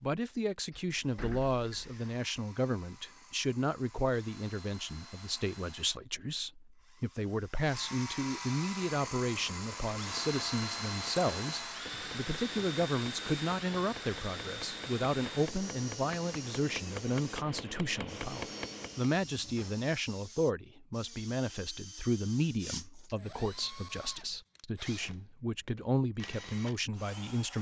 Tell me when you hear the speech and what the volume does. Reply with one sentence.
You can hear the speech from 0.0 to 27.5 s, at a steady volume.